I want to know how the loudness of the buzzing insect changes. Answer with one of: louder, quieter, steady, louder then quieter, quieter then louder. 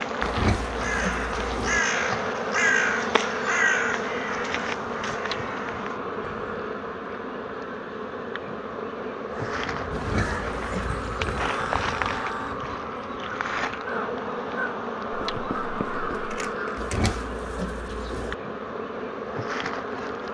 steady.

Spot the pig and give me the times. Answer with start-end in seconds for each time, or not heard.
0.2-1.8, 9.9-11.5, 16.8-18.4.